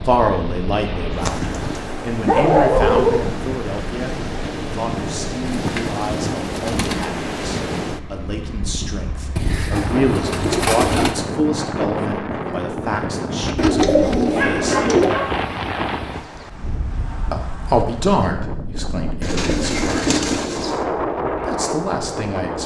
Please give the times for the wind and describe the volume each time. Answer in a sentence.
The wind can be heard from 0.0 to 22.6 s, at a steady volume.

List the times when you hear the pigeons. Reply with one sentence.
The pigeons can be heard from 1.1 to 1.8 s, from 5.4 to 7.0 s, from 9.3 to 11.2 s, from 13.6 to 15.2 s and from 19.2 to 20.9 s.